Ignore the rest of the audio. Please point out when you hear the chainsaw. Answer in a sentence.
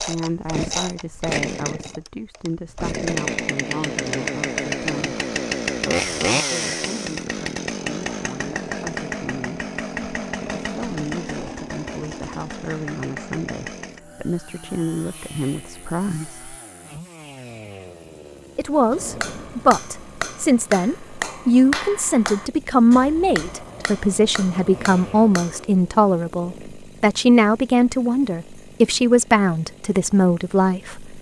You can hear the chainsaw from 0.0 to 31.1 s.